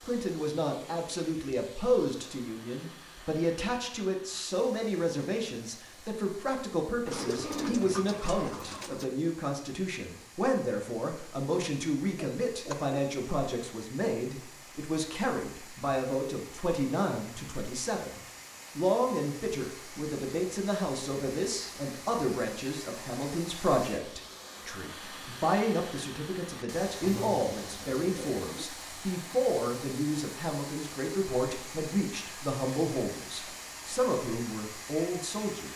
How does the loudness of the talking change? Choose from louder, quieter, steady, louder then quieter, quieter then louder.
steady.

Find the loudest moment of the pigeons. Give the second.
8 s.